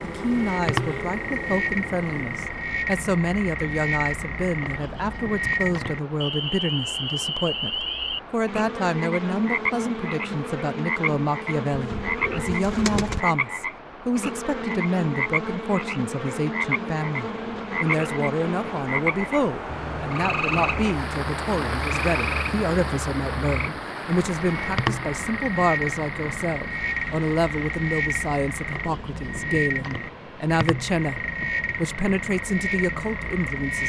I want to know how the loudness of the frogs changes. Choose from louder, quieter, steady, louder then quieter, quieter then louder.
steady.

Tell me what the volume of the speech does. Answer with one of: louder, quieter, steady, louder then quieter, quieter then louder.
steady.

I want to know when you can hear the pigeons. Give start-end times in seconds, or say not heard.
11.7-13.2.